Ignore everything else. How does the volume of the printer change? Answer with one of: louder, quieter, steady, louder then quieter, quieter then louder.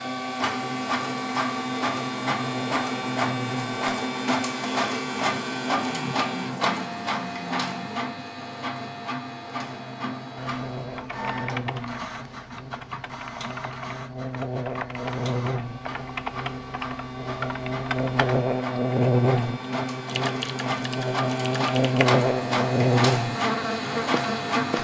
quieter then louder.